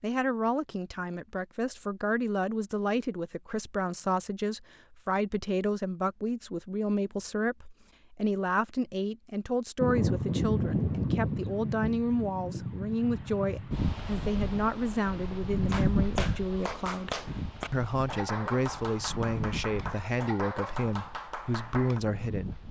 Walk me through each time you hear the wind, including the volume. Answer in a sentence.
You can hear the wind from 9.8 to 22.6 s, getting quieter.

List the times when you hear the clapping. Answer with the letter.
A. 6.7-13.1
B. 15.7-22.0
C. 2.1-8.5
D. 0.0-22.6
B.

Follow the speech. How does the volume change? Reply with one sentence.
The loudness of the speech stays about the same.